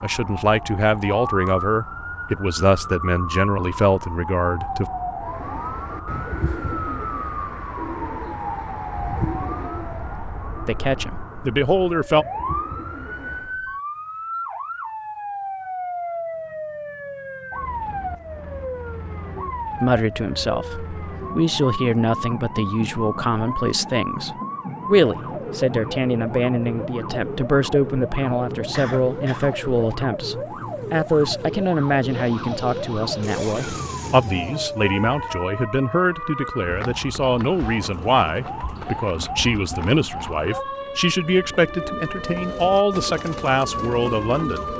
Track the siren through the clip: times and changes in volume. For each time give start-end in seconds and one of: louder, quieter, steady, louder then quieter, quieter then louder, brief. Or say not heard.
0.0-44.7 steady.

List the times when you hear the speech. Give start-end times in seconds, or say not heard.
0.0-4.9, 10.7-12.2, 19.8-44.7.